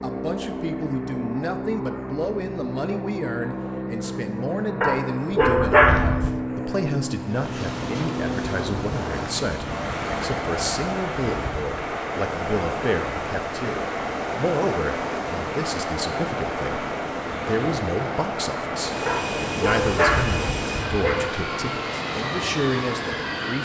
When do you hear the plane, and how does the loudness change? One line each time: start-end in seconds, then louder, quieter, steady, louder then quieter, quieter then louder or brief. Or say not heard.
0.0-23.6 steady.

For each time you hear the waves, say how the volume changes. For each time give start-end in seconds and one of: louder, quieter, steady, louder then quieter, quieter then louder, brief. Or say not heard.
7.2-23.6 steady.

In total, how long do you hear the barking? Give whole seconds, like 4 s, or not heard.
4 s.